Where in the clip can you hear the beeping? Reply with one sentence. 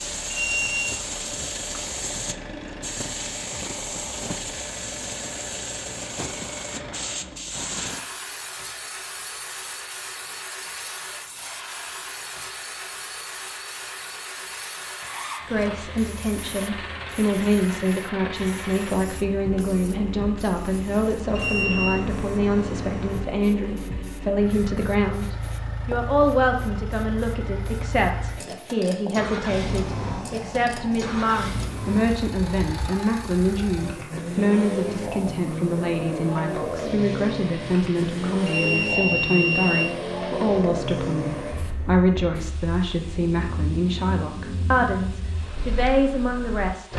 The beeping can be heard from 0.3 to 0.9 s, from 21.4 to 22.1 s and from 38.5 to 40.0 s.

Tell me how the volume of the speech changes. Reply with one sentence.
The loudness of the speech stays about the same.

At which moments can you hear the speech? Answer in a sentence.
The speech can be heard from 15.4 to 46.9 s.